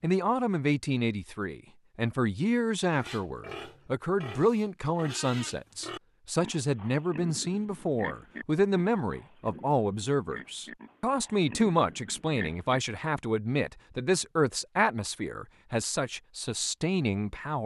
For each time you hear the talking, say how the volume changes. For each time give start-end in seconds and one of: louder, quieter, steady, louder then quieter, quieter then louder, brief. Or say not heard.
0.0-17.6 steady.